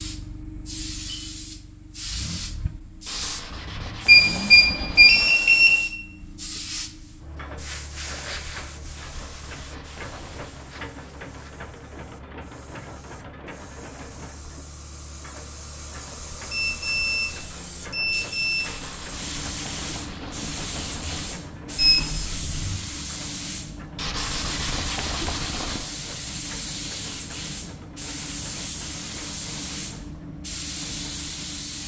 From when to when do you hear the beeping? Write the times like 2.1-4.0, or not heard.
4.0-5.8, 16.5-18.7, 21.8-22.8.